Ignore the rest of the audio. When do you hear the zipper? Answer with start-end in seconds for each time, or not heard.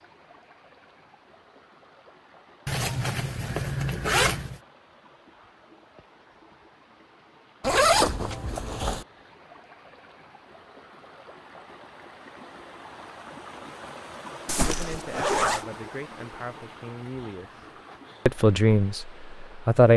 2.6-4.6, 7.6-9.1, 14.4-15.7.